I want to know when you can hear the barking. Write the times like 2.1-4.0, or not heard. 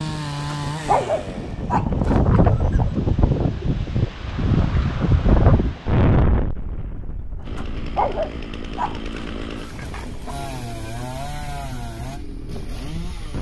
0.3-2.8, 7.4-10.3.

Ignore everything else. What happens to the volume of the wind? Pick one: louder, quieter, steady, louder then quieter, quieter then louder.
quieter.